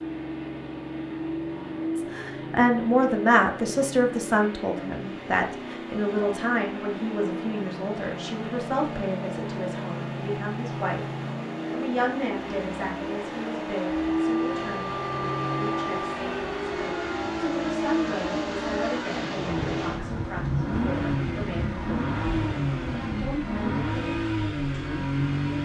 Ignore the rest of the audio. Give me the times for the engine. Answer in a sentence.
You can hear the engine from 0.0 to 25.5 s.